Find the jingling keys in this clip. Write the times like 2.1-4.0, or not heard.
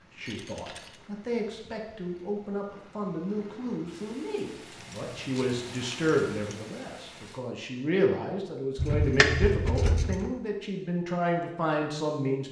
0.2-1.0, 4.8-6.5, 8.8-10.3.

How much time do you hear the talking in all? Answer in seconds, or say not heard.
12 s.